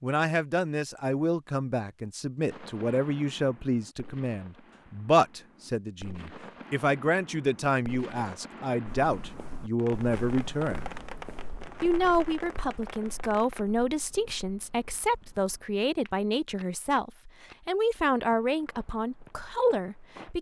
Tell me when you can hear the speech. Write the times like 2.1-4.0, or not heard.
0.0-10.9, 11.8-20.3.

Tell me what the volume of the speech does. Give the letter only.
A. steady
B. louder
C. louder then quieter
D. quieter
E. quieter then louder
A.